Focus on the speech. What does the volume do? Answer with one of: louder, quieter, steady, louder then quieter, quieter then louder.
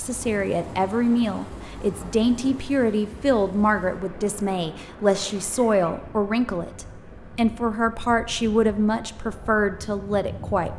steady.